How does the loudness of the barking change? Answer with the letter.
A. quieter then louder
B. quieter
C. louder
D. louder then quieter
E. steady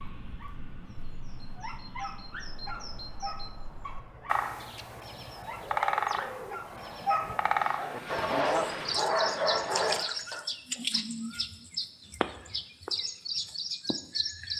C.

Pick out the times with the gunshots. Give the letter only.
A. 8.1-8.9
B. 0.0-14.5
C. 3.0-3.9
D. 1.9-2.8
A.